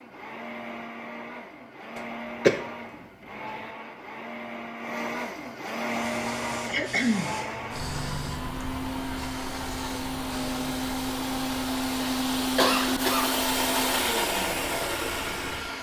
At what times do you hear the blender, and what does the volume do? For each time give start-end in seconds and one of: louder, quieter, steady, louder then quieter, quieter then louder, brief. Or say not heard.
0.0-15.7 louder.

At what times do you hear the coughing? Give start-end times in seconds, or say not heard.
6.7-7.3, 12.6-13.3.